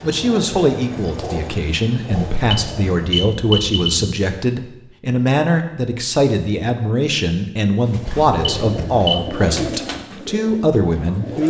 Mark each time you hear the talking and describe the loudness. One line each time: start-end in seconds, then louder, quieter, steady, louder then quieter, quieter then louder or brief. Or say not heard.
0.0-11.4 steady.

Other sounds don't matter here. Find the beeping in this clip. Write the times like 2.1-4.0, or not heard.
2.1-4.2, 8.1-9.3.